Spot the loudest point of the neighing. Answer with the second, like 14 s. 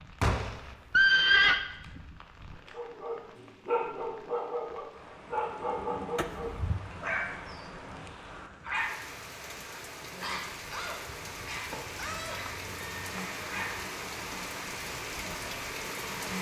1 s.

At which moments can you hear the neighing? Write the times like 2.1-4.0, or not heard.
0.2-1.6, 6.2-6.8, 11.2-13.6.